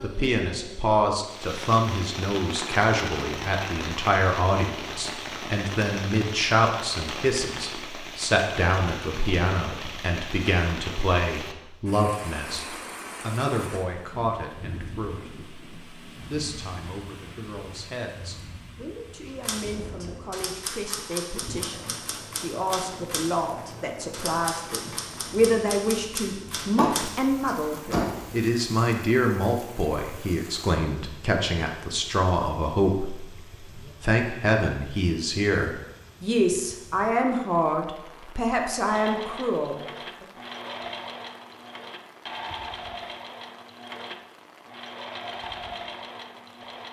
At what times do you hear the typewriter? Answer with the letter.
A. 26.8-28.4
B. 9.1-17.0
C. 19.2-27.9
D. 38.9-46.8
C.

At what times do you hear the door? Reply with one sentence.
The door can be heard from 26.8 to 28.4 s.